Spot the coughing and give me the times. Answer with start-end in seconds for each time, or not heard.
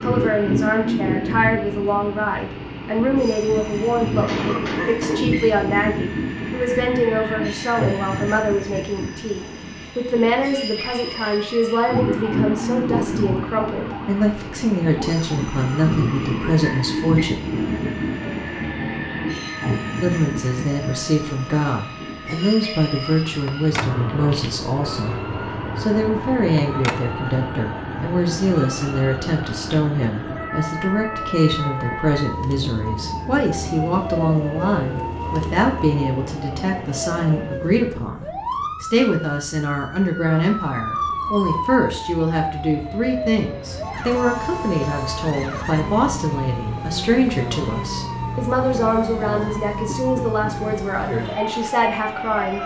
4.2-5.2.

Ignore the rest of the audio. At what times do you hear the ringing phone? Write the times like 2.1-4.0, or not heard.
23.4-23.9, 26.6-27.0.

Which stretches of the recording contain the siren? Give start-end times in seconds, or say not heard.
10.8-52.6.